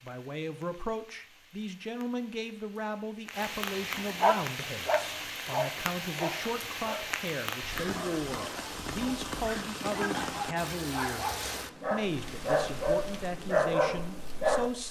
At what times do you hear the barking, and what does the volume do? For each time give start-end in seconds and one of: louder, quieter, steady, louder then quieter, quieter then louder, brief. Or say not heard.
4.0-14.7 quieter then louder.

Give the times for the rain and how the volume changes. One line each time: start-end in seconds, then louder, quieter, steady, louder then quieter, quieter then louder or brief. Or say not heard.
0.0-14.8 louder then quieter.